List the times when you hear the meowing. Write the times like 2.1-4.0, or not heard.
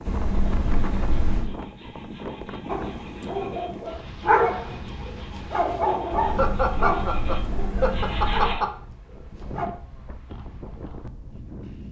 0.1-1.5, 6.1-8.6.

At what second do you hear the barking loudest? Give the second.
4 s.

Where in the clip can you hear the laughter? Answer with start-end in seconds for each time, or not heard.
6.2-8.7.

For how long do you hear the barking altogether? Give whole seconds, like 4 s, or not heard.
7 s.